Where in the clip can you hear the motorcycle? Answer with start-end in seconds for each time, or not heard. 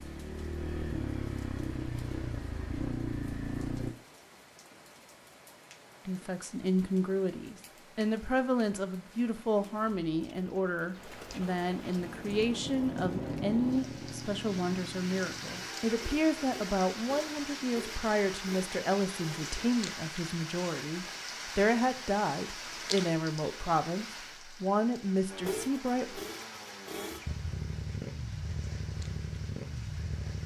0.0-4.0, 11.9-19.7, 25.3-30.4.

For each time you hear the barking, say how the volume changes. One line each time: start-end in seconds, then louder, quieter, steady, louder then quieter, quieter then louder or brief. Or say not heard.
not heard.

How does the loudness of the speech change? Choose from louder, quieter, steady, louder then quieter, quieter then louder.
steady.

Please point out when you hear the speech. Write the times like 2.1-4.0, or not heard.
6.0-26.2.